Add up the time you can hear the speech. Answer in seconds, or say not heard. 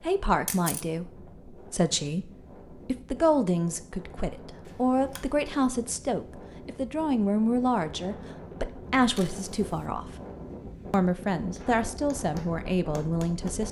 13 s.